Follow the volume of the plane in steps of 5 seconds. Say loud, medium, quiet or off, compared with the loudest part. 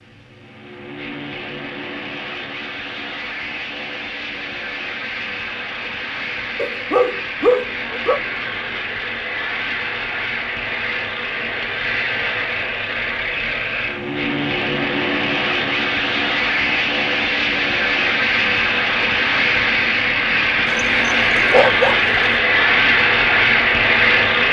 quiet, medium, medium, loud, loud.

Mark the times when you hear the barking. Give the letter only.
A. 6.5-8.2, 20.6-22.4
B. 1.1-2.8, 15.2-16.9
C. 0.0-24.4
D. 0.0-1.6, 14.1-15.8
A.